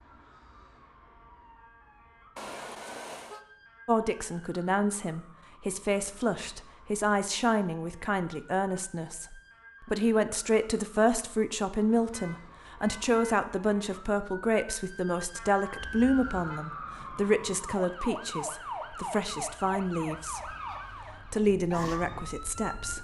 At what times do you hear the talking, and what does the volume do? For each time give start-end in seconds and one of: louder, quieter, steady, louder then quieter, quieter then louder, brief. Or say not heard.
3.9-20.6 steady
21.3-22.9 brief.